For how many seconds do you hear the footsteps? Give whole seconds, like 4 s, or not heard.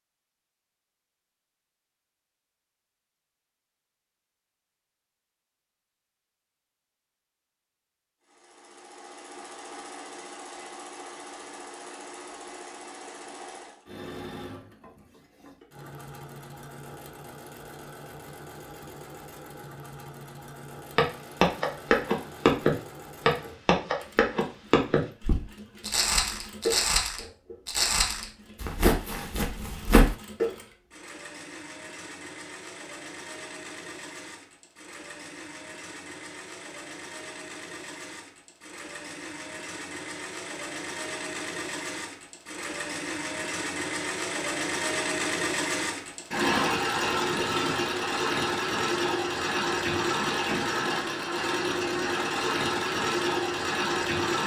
9 s.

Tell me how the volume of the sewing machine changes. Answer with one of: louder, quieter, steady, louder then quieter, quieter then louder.
louder.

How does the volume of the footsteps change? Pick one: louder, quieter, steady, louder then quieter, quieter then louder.
quieter.